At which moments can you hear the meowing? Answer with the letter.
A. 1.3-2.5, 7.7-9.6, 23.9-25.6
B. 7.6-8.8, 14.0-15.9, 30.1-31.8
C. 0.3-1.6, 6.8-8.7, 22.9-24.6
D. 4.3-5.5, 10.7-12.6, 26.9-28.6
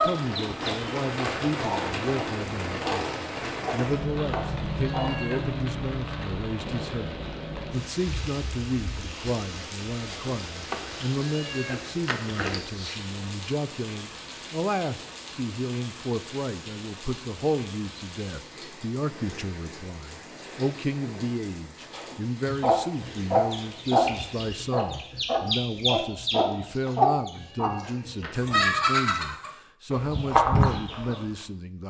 D.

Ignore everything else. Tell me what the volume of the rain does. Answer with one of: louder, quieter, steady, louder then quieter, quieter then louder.
quieter.